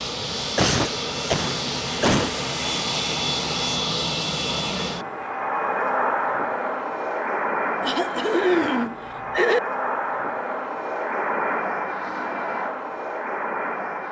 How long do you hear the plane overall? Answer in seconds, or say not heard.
14 s.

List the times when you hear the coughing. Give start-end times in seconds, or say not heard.
0.6-2.3, 7.8-9.6.